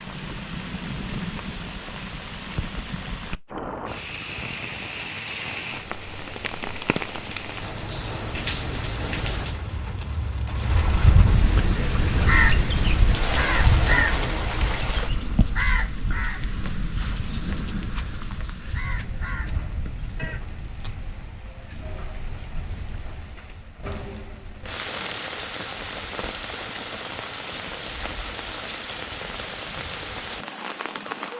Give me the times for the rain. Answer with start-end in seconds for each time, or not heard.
0.0-31.3.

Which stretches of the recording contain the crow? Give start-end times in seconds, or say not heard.
10.7-20.5.